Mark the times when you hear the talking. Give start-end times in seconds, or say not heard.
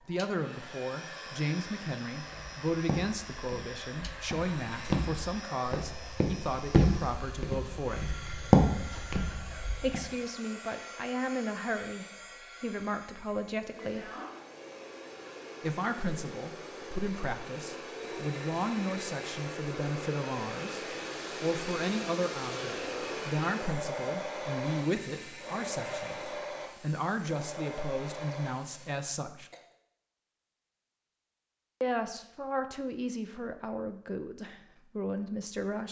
0.1-8.2, 9.8-14.1, 15.6-29.5, 31.8-35.8.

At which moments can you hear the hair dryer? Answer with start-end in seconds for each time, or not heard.
0.0-29.1.